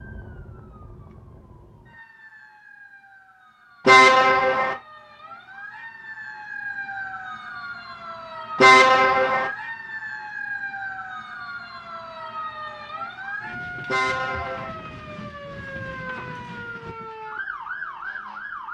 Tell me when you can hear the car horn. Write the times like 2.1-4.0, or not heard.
3.9-4.8, 8.6-9.5, 13.8-14.8.